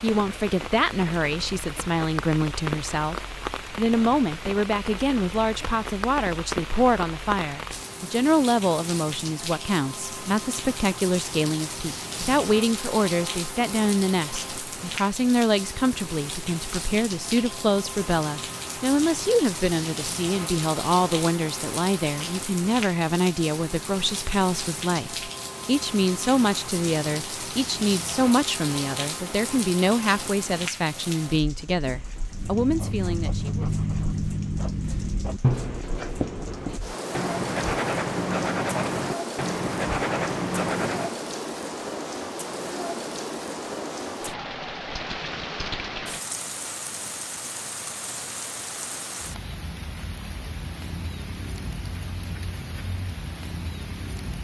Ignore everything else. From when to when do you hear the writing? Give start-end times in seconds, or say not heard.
32.3-41.1.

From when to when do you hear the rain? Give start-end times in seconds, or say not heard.
0.0-54.3.